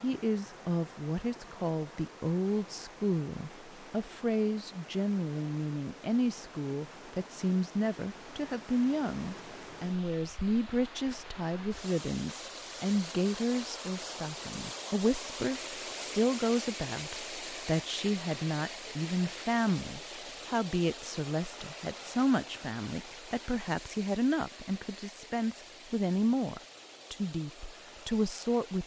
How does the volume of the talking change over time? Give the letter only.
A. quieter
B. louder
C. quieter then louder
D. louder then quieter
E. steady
E.